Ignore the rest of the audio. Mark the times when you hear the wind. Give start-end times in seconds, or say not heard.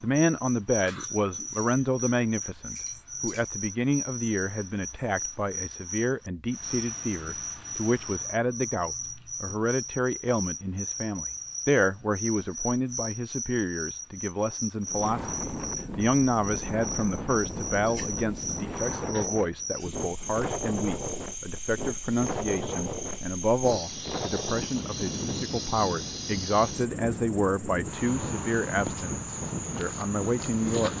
14.8-30.9.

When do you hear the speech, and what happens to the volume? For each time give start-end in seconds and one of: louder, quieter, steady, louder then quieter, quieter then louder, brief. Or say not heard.
0.0-30.9 steady.